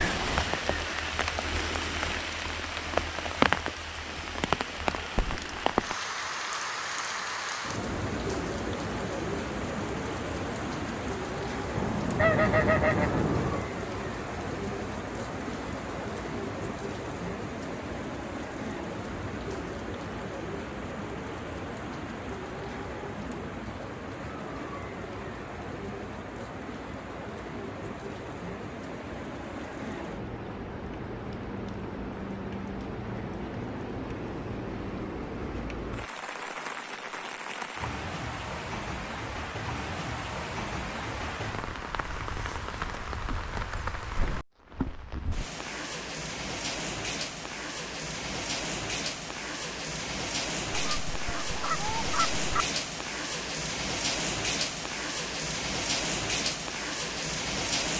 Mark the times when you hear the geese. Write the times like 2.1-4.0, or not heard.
11.8-13.7, 50.7-52.6.